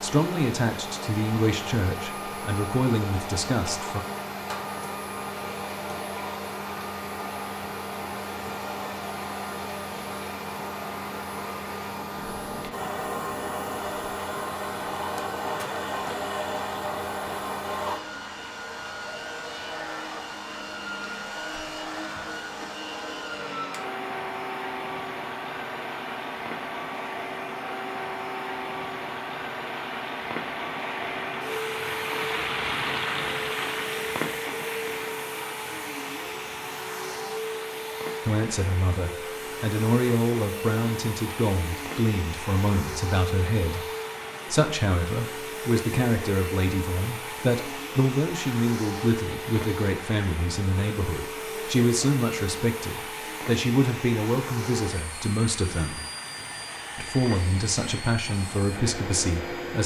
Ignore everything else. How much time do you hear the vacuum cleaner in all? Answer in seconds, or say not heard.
60 s.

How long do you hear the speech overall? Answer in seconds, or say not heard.
24 s.